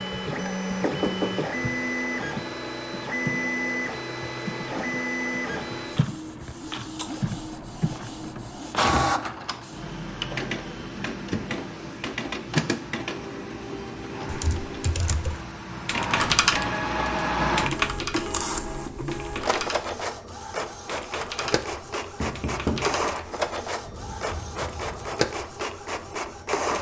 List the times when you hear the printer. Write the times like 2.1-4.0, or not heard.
0.0-26.7.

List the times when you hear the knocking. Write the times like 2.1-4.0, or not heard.
0.8-1.5, 22.2-23.1.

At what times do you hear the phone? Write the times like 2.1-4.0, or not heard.
not heard.